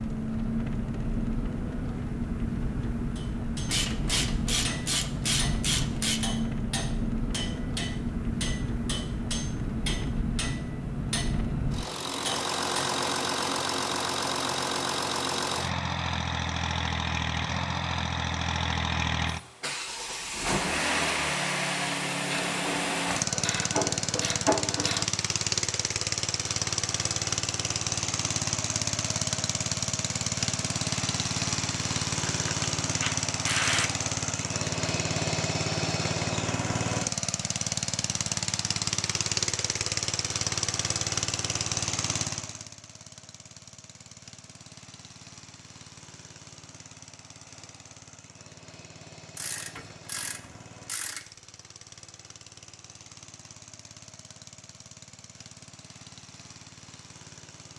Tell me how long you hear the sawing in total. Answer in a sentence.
The sawing can't be heard in this clip.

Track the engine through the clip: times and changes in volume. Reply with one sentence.
The engine can be heard from 0.0 to 57.7 s, getting quieter.